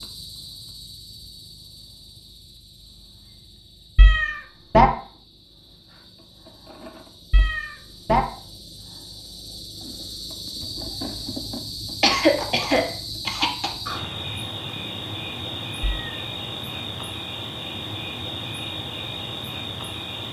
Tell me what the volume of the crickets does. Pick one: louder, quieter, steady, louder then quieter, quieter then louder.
louder.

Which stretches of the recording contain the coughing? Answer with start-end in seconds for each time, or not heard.
12.0-13.7.